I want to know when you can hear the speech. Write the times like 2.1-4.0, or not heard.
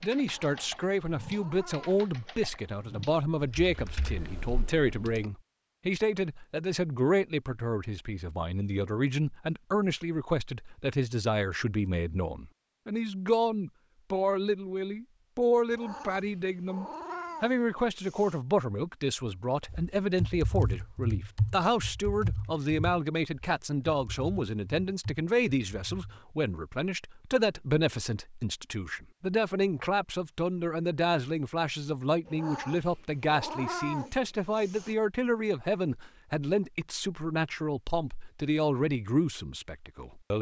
0.0-40.3.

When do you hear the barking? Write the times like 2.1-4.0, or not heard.
not heard.